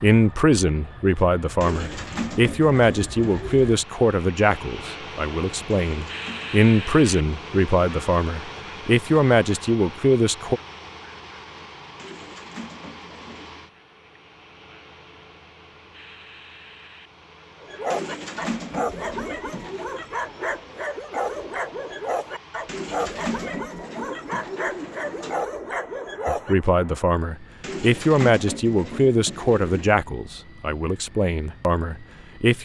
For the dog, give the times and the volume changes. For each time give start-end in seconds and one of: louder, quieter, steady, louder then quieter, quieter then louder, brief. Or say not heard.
17.6-26.6 steady.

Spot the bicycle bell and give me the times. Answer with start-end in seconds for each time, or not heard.
not heard.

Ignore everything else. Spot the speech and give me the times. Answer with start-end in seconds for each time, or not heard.
0.0-10.6, 26.2-32.6.